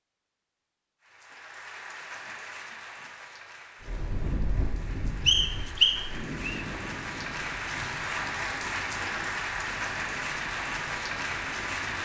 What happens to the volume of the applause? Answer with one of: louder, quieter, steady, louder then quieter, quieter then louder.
quieter then louder.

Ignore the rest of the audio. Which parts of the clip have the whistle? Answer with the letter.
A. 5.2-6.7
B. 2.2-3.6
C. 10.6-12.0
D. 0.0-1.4
A.